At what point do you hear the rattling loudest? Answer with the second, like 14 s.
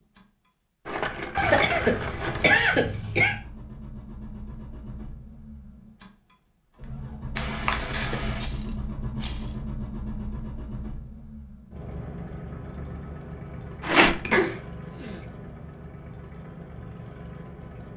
14 s.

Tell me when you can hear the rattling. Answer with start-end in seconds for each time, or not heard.
0.8-2.6, 8.3-9.6, 13.8-14.2.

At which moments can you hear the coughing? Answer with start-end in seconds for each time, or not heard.
1.4-3.4, 7.3-8.4, 14.2-15.2.